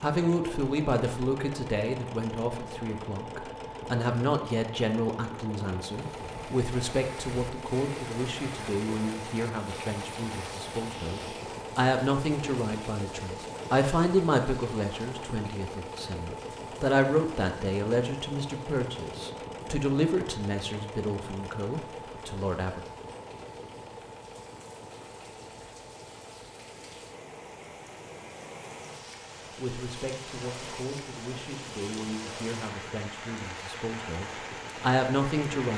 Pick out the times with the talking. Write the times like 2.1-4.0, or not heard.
0.0-22.8, 29.6-35.7.